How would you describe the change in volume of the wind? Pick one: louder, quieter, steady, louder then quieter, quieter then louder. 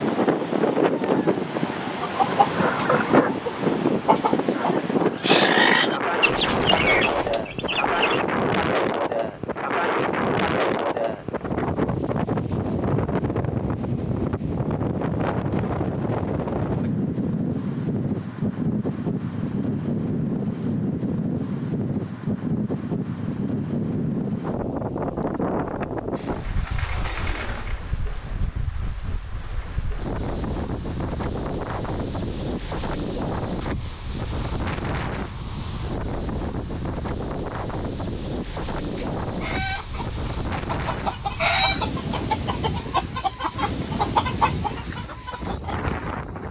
quieter.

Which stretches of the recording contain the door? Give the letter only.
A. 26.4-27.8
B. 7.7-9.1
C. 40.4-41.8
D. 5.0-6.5
A.